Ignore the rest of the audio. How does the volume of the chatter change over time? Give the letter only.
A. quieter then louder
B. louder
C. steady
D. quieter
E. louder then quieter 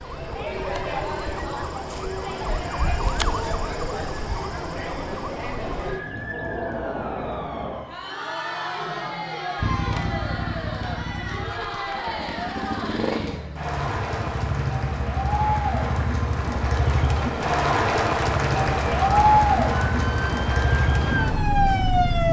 B.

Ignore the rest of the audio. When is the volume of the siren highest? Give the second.
22 s.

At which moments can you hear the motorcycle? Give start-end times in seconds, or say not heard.
9.6-22.2.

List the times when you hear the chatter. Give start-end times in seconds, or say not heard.
0.0-22.2.